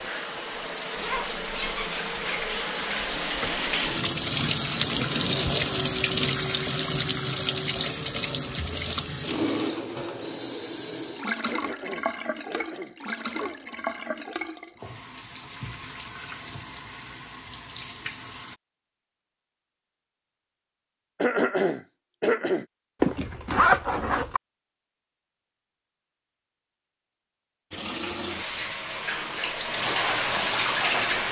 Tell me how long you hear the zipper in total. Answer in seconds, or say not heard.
2 s.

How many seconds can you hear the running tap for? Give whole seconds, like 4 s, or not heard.
22 s.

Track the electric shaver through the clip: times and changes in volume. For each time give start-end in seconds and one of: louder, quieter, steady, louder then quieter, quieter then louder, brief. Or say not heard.
not heard.